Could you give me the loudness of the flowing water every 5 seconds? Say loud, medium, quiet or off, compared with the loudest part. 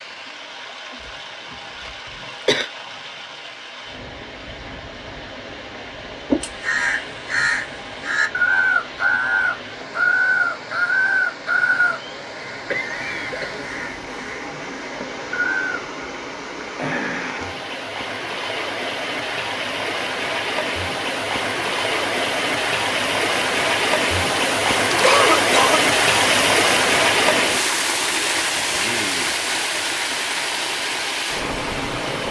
quiet, quiet, quiet, medium, loud, loud, medium.